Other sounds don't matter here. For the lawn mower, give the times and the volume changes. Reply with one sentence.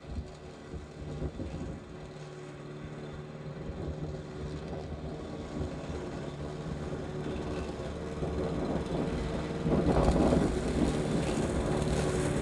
The lawn mower can be heard from 0.0 to 12.3 s, getting louder.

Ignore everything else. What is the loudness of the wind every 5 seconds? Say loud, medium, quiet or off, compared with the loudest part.
quiet, medium, loud.